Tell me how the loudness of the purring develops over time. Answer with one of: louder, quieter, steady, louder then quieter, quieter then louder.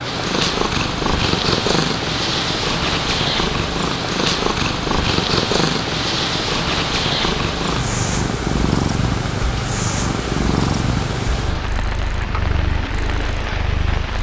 quieter.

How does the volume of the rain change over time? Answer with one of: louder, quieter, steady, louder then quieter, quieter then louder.
steady.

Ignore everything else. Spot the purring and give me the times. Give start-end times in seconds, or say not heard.
0.0-14.1.